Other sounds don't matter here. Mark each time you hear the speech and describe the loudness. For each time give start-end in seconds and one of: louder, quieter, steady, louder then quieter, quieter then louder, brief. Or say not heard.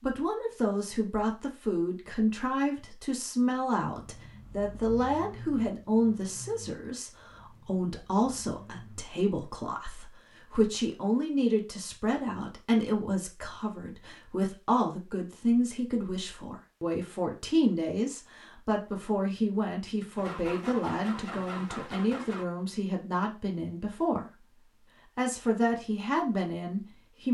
0.0-24.4 steady
25.1-27.2 brief.